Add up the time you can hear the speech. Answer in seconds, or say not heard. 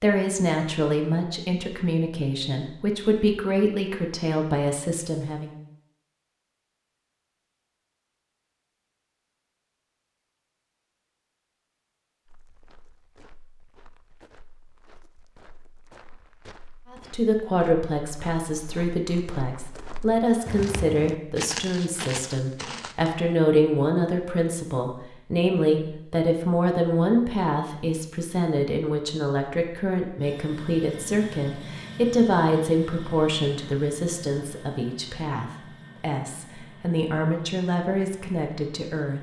28 s.